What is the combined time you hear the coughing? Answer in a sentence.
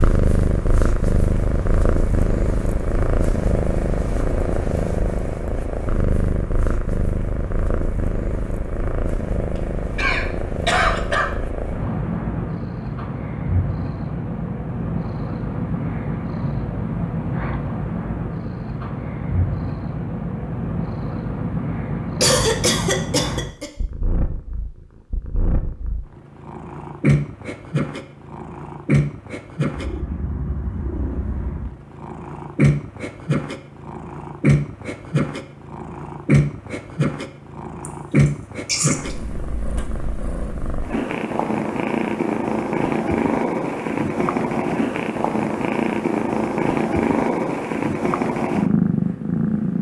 You can hear the coughing for 4 seconds altogether.